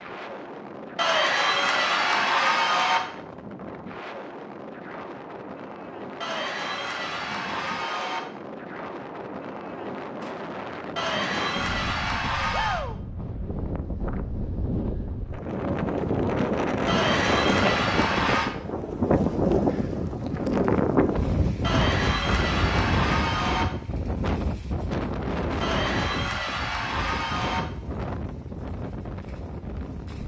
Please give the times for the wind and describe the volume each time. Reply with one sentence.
You can hear the wind from 0.0 to 30.2 s, getting louder then quieter.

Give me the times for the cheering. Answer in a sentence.
The cheering can be heard from 0.9 to 3.0 s, from 6.2 to 8.2 s, from 10.9 to 12.8 s, from 16.9 to 18.5 s, from 21.6 to 23.6 s and from 25.6 to 27.6 s.